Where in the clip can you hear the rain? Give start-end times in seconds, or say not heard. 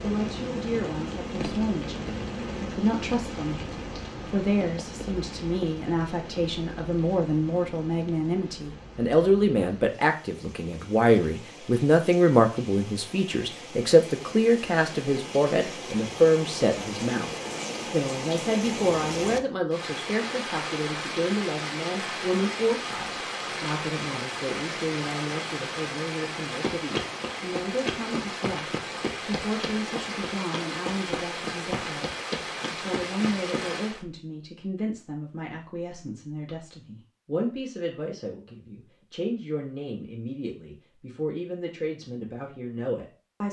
0.0-34.0.